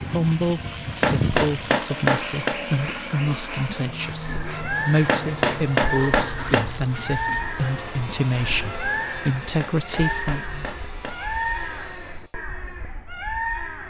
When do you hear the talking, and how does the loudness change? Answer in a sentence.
The talking can be heard from 0.0 to 10.8 s, at a steady volume.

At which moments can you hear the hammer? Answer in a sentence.
The hammer can be heard from 1.0 to 2.5 s, from 5.0 to 6.7 s and from 9.6 to 11.2 s.